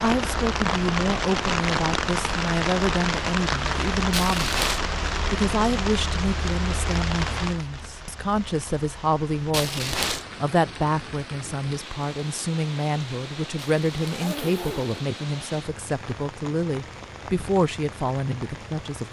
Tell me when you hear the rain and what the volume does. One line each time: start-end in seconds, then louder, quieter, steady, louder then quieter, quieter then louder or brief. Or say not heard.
0.0-19.0 quieter.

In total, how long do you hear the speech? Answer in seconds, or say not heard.
18 s.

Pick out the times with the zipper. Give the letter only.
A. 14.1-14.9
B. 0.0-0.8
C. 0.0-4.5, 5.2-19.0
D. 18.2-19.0
A.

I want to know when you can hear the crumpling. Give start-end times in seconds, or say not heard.
4.1-4.8, 9.5-10.2, 13.6-14.3.